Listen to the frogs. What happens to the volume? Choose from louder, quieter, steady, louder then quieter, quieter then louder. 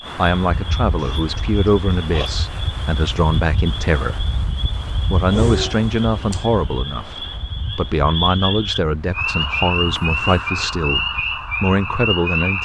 louder.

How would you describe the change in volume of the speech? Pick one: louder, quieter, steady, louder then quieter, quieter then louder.
steady.